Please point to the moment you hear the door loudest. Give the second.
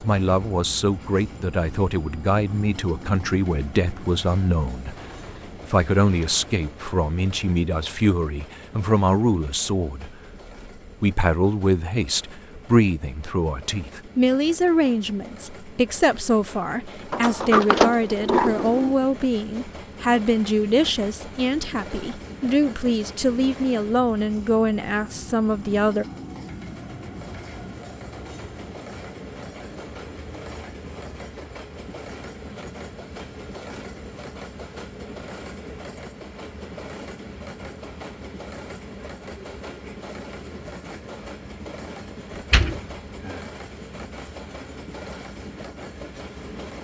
18 s.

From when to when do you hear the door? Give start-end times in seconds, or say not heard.
4.8-6.6, 17.1-18.9, 42.3-43.5.